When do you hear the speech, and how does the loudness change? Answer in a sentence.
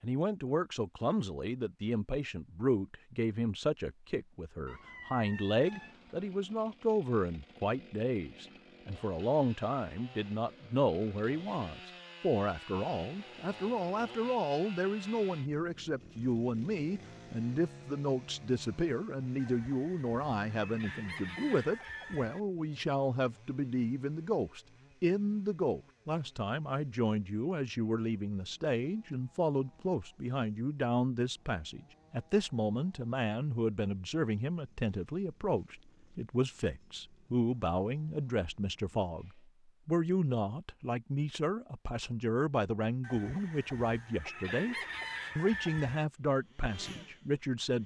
The speech can be heard from 0.0 to 44.8 s, at a steady volume; and briefly from 45.4 to 47.8 s.